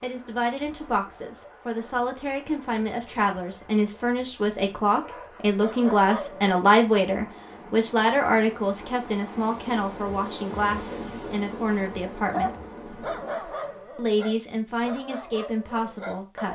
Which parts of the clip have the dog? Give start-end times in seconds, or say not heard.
5.0-6.5, 12.3-16.4.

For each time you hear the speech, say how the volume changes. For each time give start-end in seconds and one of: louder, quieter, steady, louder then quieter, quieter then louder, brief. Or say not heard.
0.0-12.6 louder then quieter
13.9-16.4 brief.